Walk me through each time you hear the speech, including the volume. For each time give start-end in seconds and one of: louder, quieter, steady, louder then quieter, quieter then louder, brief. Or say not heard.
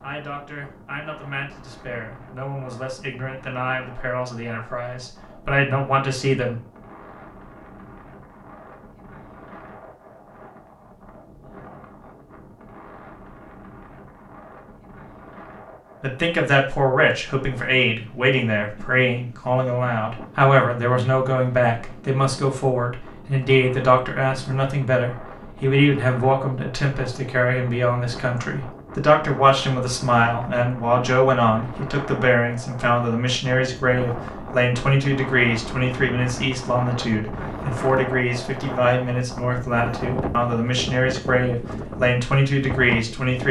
0.0-6.5 louder
16.0-43.4 steady.